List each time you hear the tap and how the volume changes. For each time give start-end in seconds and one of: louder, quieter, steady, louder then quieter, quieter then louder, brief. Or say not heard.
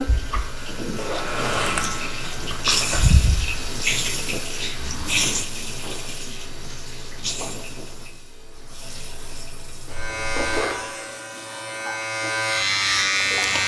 0.0-13.6 quieter.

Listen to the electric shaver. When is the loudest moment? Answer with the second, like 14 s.
13 s.